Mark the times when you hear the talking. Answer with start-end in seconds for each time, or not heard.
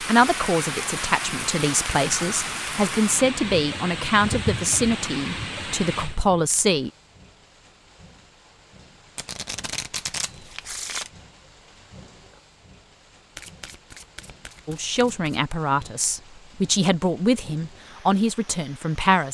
0.0-6.9, 14.7-19.2.